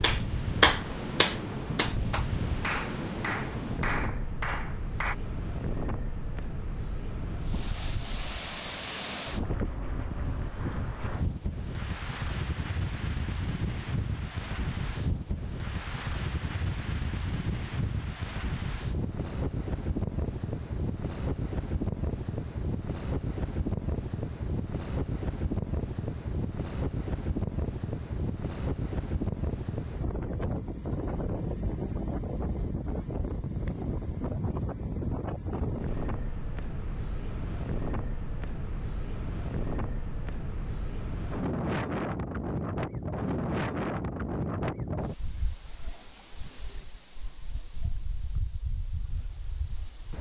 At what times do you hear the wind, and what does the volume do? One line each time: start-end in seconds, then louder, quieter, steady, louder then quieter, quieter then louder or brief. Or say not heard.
0.0-50.1 steady.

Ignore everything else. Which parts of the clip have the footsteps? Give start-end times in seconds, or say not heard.
not heard.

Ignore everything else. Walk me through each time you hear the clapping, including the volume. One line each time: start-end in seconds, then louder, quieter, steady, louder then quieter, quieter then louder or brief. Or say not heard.
0.0-5.2 quieter.